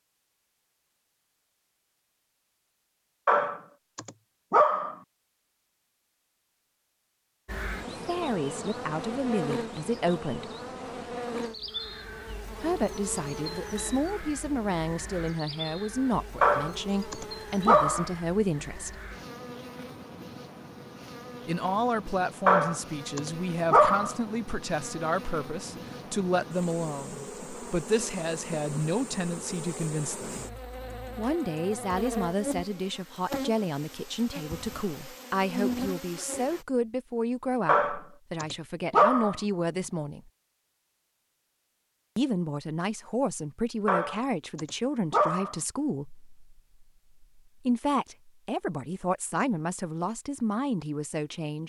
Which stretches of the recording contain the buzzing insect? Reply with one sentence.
You can hear the buzzing insect from 7.5 to 36.6 s.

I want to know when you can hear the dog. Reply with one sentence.
You can hear the dog from 3.2 to 5.0 s, from 16.4 to 18.1 s, from 22.4 to 24.1 s, from 37.6 to 39.4 s and from 43.9 to 45.5 s.